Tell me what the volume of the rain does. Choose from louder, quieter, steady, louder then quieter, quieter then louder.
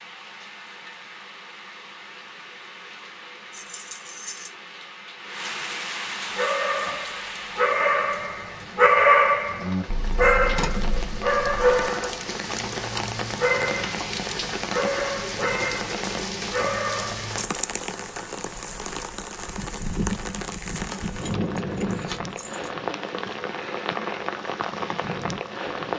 louder.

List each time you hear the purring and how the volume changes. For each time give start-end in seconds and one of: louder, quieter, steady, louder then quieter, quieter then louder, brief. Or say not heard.
not heard.